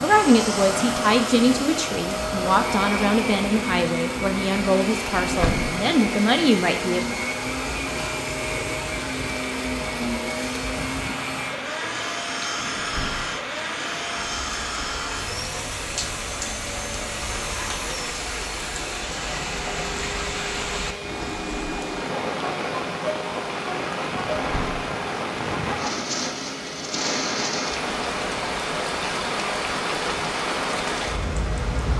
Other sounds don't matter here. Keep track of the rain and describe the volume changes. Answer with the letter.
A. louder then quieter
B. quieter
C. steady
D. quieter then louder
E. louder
E.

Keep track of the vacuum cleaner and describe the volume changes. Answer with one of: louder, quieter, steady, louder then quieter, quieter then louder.
quieter.